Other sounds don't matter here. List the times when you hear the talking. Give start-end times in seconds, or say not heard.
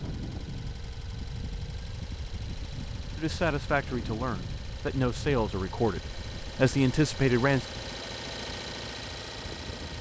3.1-7.7.